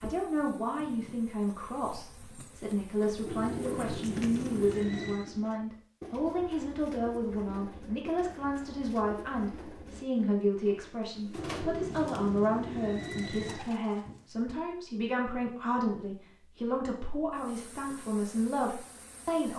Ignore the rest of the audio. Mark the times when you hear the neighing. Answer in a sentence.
You can hear the neighing from 3.2 to 5.3 s and from 11.3 to 13.7 s.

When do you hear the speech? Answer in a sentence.
You can hear the speech from 0.0 to 19.5 s.